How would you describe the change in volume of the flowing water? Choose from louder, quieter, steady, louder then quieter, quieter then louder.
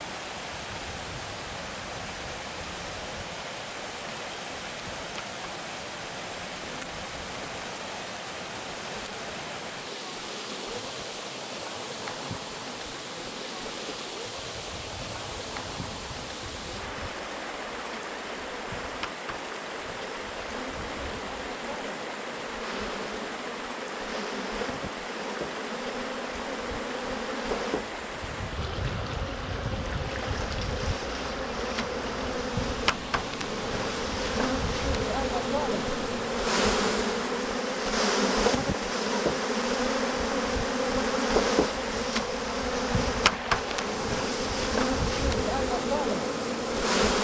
steady.